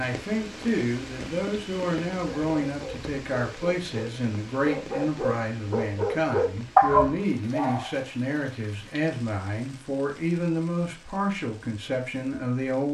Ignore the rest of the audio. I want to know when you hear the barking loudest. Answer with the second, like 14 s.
7 s.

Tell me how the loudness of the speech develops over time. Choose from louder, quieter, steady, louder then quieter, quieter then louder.
steady.